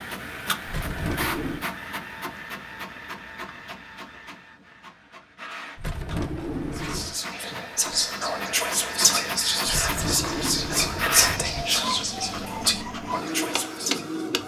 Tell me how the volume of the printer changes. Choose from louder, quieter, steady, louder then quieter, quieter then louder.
quieter then louder.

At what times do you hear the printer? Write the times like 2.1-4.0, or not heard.
0.0-14.4.